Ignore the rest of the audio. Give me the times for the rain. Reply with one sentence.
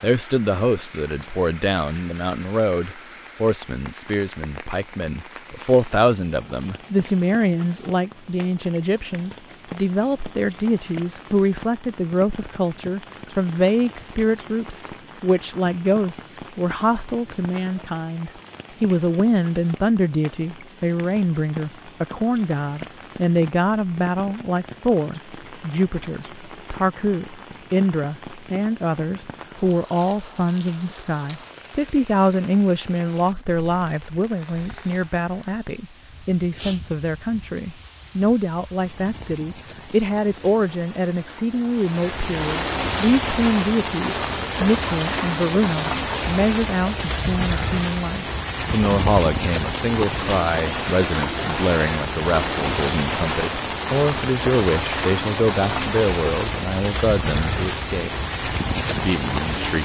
The rain can be heard from 0.0 to 59.7 s.